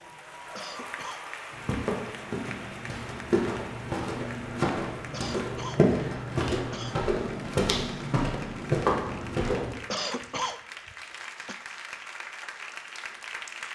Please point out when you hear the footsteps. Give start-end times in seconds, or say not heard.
1.5-9.8.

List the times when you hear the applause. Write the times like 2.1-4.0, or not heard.
0.0-13.7.